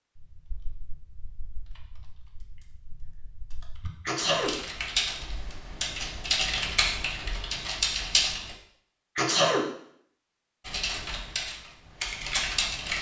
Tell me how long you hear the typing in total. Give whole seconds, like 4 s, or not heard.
11 s.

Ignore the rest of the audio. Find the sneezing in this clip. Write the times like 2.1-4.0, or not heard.
4.0-4.5, 9.2-9.7.